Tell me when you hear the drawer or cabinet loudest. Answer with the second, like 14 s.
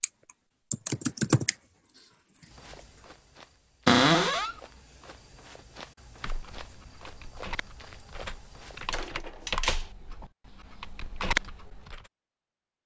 4 s.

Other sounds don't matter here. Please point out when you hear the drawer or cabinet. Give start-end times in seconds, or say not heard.
3.9-4.5, 8.9-9.9.